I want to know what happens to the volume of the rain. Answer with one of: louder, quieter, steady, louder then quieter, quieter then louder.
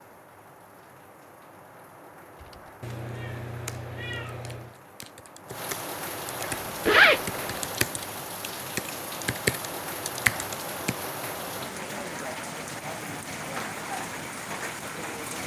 louder.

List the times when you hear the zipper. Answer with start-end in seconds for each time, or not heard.
6.4-7.5.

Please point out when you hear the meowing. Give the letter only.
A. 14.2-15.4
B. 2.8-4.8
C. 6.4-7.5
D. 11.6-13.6
B.